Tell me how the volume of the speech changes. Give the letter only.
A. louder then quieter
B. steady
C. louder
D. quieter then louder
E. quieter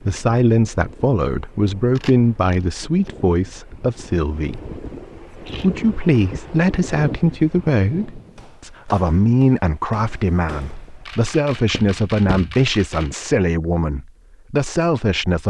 B.